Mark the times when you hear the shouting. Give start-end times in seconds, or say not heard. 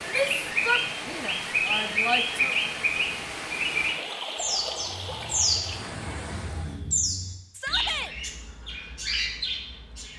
0.1-2.5, 7.5-8.2.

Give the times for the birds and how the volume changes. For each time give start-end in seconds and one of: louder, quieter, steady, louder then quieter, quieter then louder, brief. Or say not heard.
0.1-10.1 quieter.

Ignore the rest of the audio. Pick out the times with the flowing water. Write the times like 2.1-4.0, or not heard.
0.0-6.8.